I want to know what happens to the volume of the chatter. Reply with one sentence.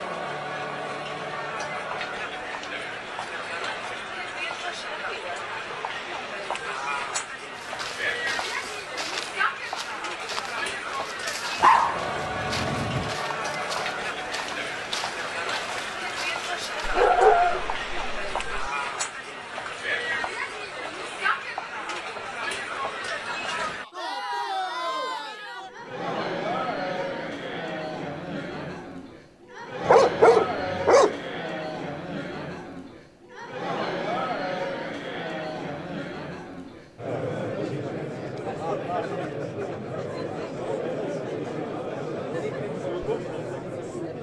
The loudness of the chatter stays about the same.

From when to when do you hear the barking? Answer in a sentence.
The barking can be heard from 11.6 to 13.2 s, from 16.9 to 18.7 s and from 29.8 to 31.2 s.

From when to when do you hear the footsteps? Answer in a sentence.
You can hear the footsteps from 7.5 to 17.1 s.